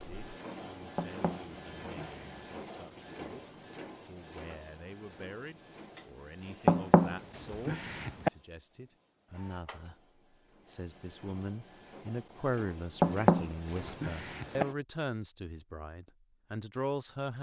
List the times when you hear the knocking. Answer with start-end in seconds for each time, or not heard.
0.9-2.3, 6.7-8.3, 13.0-14.7.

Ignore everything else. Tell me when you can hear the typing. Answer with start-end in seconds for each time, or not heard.
not heard.